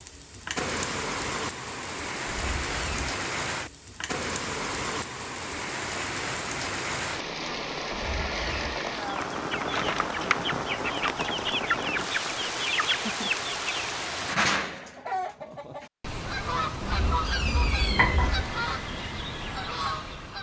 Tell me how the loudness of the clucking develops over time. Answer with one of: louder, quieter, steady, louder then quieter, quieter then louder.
steady.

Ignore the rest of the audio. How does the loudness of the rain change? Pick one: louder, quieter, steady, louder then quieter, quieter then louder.
steady.